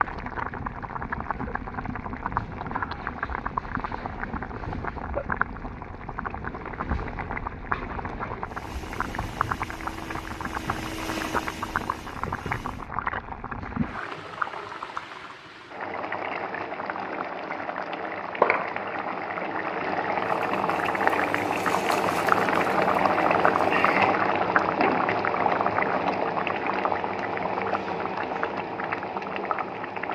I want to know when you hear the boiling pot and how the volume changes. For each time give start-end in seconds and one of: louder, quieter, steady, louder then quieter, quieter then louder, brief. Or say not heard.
0.0-30.1 louder.